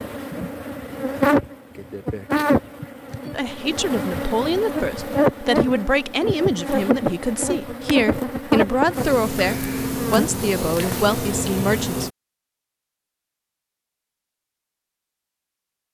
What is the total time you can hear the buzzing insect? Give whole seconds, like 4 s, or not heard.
12 s.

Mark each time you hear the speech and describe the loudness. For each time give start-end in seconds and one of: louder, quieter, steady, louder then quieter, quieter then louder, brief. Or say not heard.
3.3-12.1 steady.